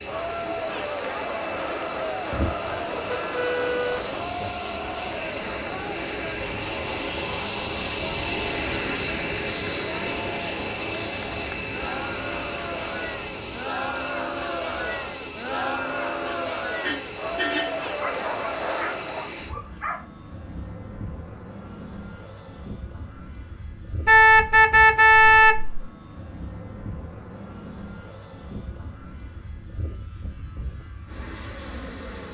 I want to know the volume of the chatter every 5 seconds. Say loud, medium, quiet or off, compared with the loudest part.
loud, medium, loud, loud, off, off, off.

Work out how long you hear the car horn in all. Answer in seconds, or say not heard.
5 s.